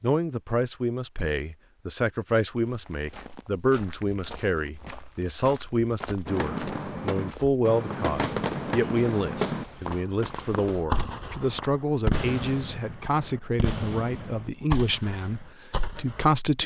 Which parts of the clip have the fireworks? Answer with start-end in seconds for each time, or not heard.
6.2-16.2.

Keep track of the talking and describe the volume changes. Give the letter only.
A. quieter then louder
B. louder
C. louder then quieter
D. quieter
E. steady
E.